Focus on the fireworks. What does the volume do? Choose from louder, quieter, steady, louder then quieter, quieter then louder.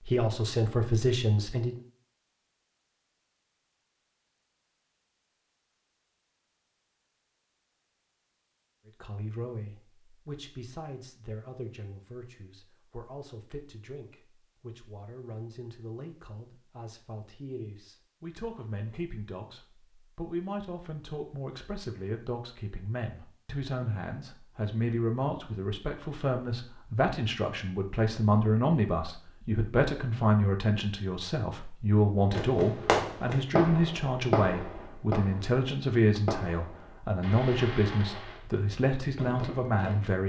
quieter.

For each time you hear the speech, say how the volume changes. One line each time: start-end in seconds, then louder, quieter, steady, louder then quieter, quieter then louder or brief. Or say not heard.
0.1-1.8 brief
8.8-40.2 louder.